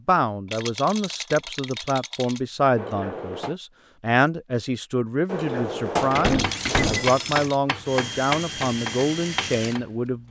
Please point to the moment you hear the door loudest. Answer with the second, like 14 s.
6 s.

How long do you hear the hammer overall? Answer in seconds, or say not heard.
4 s.